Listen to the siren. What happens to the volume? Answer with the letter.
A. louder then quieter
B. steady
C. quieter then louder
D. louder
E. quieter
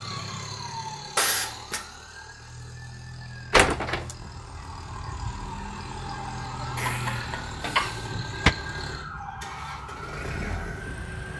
C.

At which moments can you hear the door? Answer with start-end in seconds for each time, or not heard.
3.5-4.1, 7.1-8.6.